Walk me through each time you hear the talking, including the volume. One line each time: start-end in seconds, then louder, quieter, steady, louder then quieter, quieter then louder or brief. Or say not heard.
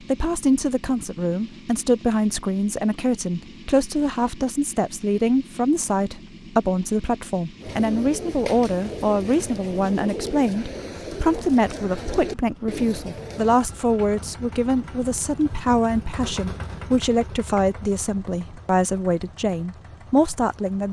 0.1-20.8 steady.